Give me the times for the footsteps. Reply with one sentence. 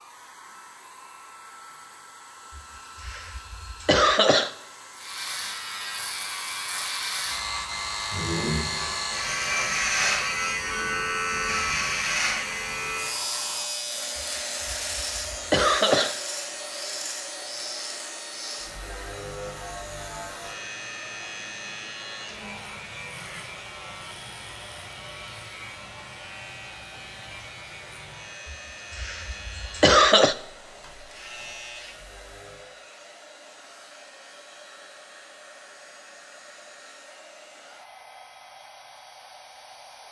The footsteps can't be heard in this clip.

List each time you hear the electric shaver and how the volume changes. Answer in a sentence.
The electric shaver can be heard from 4.9 to 32.7 s, getting quieter.